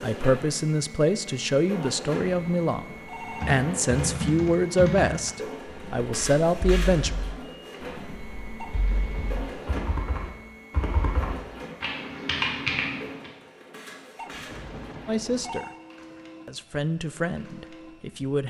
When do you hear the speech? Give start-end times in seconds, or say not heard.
0.0-7.2, 15.1-15.7, 16.4-18.4.